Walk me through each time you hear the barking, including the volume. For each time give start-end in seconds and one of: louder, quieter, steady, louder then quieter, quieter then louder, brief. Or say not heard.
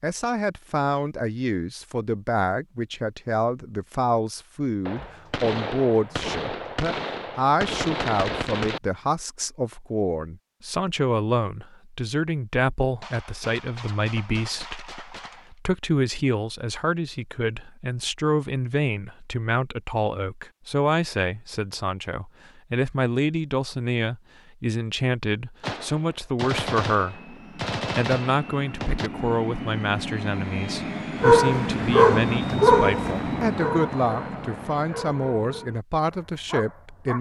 31.2-37.1 quieter.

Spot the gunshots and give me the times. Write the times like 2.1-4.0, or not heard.
4.8-8.8, 13.0-15.6, 25.6-29.1.